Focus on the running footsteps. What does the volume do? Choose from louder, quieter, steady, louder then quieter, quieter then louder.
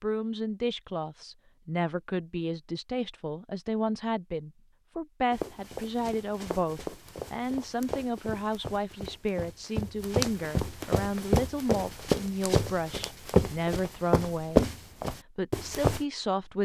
louder.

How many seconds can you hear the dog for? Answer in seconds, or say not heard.
not heard.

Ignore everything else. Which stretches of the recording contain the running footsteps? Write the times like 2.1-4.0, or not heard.
5.3-16.0.